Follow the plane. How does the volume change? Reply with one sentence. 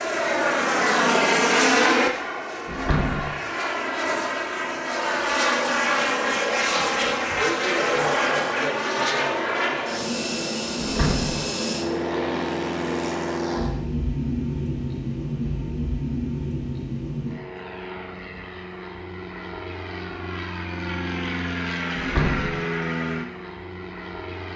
The volume of the plane goes down.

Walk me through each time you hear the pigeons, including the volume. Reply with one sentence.
The pigeons can't be heard in this clip.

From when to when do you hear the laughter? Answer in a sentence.
You can't hear the laughter here.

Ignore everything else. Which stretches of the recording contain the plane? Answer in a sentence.
You can hear the plane from 0.0 to 24.5 s.